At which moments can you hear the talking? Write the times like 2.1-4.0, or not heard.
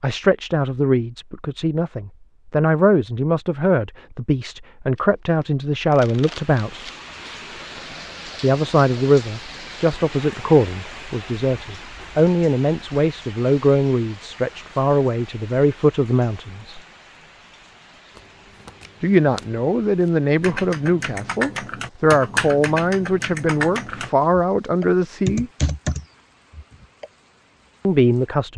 0.0-6.8, 8.4-16.8, 19.0-25.5, 27.9-28.5.